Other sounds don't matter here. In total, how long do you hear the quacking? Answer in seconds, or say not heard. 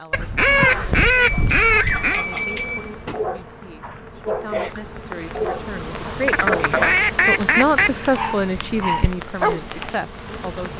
4 s.